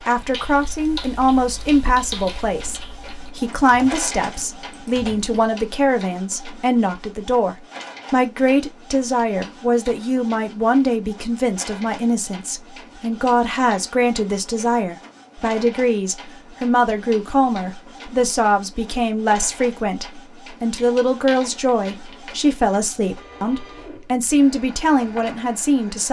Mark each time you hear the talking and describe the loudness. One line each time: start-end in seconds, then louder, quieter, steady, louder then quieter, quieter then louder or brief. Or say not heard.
0.1-26.0 steady.